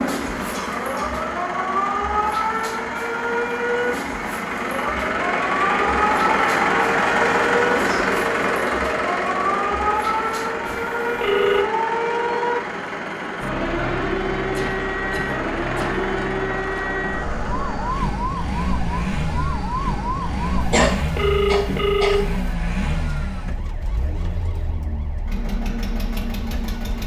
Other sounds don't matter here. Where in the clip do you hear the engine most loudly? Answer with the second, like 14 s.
7 s.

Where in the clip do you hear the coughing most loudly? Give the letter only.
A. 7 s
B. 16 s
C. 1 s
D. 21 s
D.